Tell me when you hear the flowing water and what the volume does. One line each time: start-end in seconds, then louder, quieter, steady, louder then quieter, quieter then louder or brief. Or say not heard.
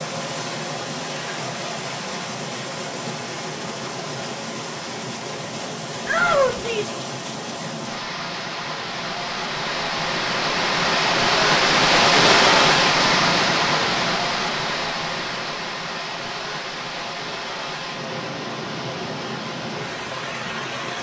0.0-20.9 louder then quieter.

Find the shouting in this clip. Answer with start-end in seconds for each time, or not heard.
6.0-7.0.